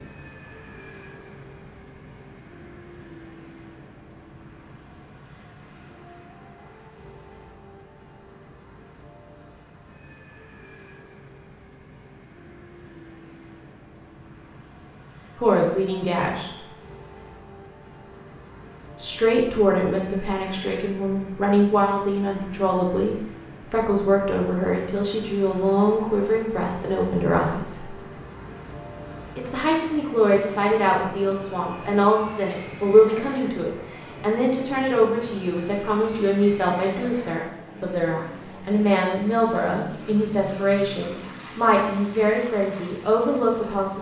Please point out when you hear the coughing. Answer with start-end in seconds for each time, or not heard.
not heard.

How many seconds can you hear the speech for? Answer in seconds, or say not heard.
25 s.